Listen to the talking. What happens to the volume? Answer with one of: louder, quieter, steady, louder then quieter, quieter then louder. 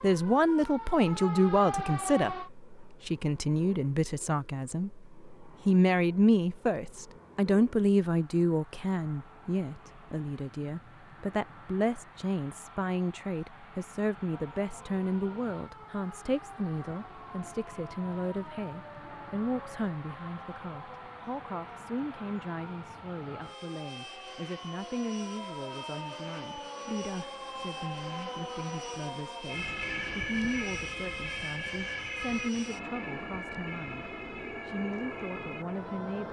quieter.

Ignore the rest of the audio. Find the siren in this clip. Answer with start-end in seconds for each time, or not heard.
0.0-2.5, 14.3-36.2.